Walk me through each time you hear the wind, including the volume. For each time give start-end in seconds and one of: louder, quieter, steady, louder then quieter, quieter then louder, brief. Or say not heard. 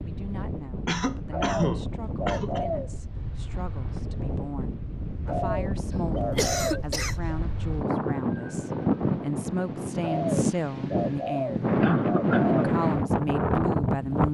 0.0-14.2 louder.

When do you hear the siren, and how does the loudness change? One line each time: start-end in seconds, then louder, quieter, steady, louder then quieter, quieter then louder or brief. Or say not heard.
not heard.